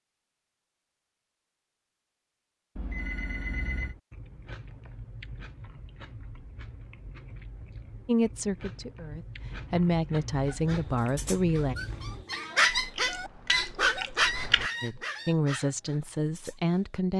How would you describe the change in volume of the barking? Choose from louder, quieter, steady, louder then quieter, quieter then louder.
louder then quieter.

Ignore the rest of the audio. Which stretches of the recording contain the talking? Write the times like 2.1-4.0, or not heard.
8.1-11.8, 14.8-17.1.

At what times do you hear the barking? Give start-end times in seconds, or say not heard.
10.5-17.0.